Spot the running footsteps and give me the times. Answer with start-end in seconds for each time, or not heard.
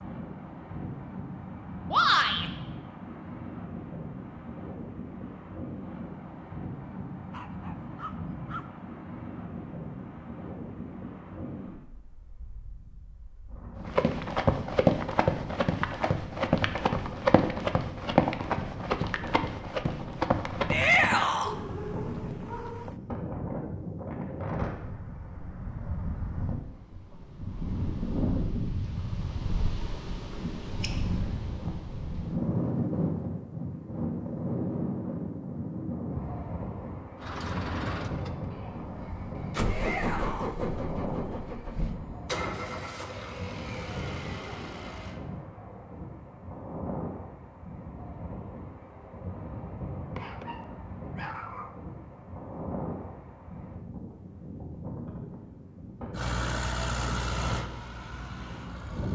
13.8-21.3.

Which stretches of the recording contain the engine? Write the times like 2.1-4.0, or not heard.
37.1-45.2, 56.1-59.1.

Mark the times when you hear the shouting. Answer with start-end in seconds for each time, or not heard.
1.9-2.5, 20.7-21.6, 39.6-40.5.